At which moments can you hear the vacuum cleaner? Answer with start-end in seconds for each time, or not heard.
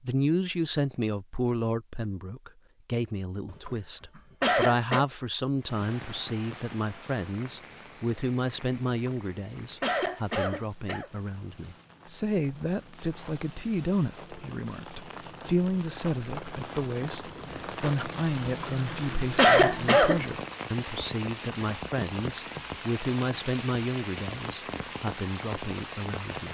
not heard.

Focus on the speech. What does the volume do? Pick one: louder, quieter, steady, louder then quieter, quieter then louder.
steady.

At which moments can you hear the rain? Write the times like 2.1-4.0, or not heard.
5.5-26.4.